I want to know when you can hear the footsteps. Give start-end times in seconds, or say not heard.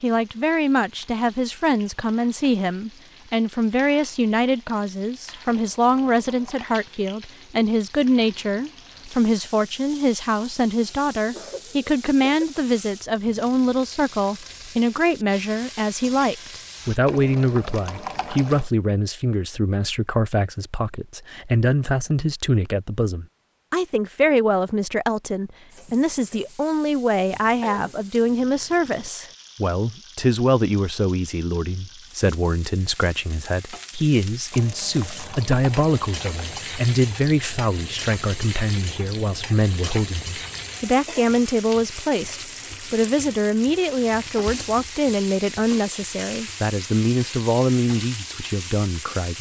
not heard.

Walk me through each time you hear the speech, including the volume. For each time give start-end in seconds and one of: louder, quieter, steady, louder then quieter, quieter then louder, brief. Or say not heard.
0.0-49.3 steady.